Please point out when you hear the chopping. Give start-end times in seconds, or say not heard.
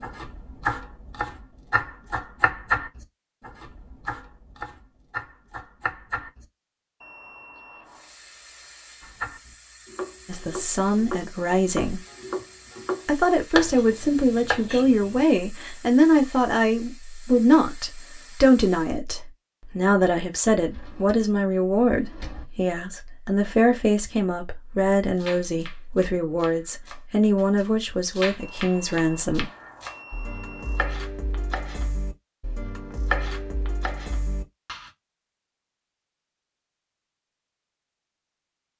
0.0-6.5, 9.0-15.2, 25.1-34.9.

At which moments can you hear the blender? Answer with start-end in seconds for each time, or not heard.
not heard.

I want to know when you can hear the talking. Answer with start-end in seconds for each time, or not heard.
10.2-12.0, 13.1-29.4.